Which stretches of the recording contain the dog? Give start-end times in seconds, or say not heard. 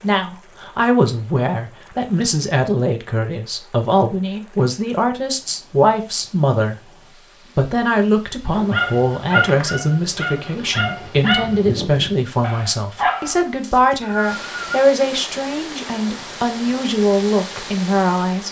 8.5-13.4.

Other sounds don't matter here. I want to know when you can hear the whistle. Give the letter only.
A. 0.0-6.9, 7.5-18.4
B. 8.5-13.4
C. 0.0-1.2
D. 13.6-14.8
D.